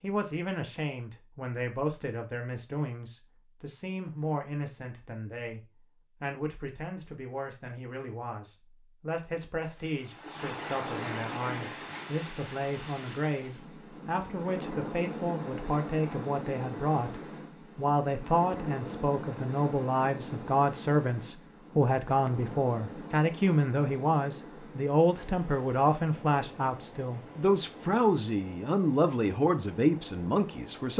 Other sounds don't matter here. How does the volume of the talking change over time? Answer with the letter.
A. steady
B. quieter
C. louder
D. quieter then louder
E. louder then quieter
C.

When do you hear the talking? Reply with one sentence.
The talking can be heard from 0.0 to 30.9 s.